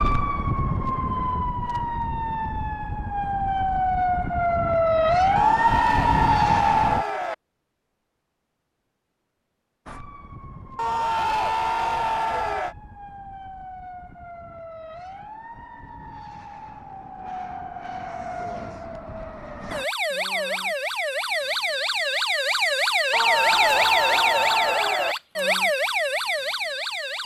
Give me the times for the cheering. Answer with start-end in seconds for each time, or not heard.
5.3-7.3, 10.8-12.8, 23.1-25.1.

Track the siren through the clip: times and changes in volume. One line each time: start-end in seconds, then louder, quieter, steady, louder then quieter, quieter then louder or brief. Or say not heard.
0.0-7.0 louder
9.8-27.2 louder.